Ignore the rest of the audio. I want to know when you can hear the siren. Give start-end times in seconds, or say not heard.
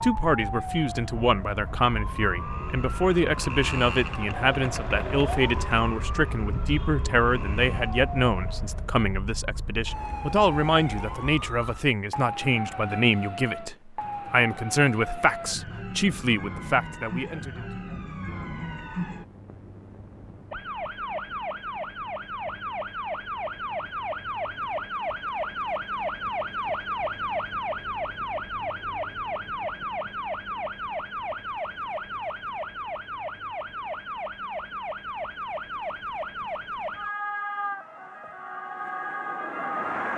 0.0-40.1.